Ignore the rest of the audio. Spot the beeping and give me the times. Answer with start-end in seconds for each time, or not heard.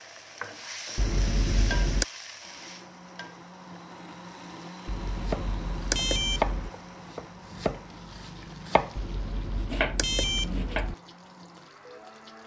0.9-2.0, 4.8-6.7, 8.9-10.9.